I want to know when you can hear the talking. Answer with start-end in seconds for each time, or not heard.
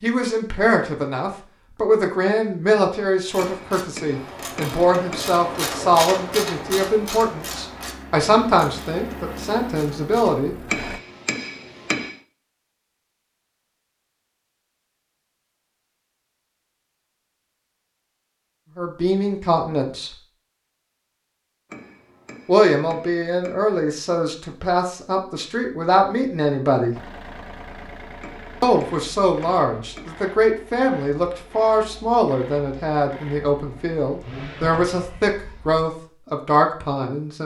0.0-10.6, 18.8-20.1, 22.4-26.9, 28.6-37.4.